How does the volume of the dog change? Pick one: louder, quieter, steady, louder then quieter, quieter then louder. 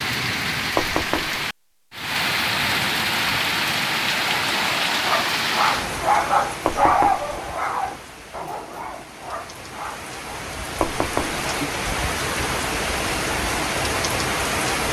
louder then quieter.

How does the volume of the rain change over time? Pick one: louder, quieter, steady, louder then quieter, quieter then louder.
quieter then louder.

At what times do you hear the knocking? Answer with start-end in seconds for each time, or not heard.
0.8-1.4, 6.7-7.2, 10.8-11.4.